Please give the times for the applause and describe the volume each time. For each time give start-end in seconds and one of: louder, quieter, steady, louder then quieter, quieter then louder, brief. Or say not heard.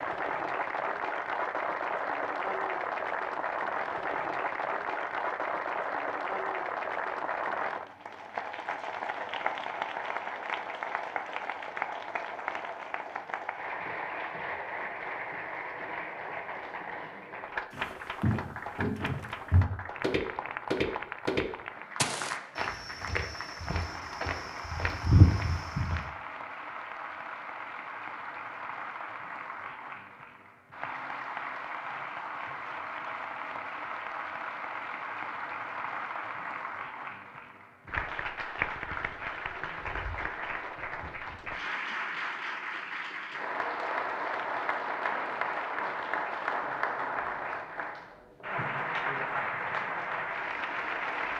0.0-51.3 quieter then louder.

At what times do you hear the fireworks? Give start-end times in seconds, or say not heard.
not heard.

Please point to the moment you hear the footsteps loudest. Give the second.
25 s.